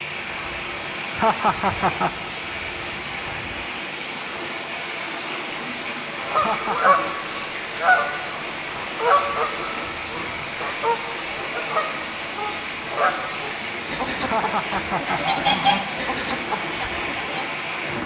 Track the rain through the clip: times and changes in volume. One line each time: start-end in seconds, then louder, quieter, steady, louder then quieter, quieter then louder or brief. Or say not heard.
0.0-18.0 steady.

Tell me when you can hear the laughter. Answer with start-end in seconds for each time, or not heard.
1.1-2.1, 6.3-7.2, 14.2-15.2.